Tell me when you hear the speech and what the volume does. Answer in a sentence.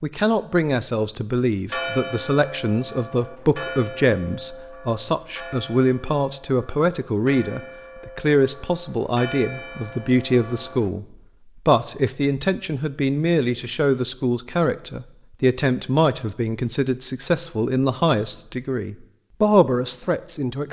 You can hear the speech from 0.0 to 11.1 s, at a steady volume; and from 11.7 to 20.6 s, at a steady volume.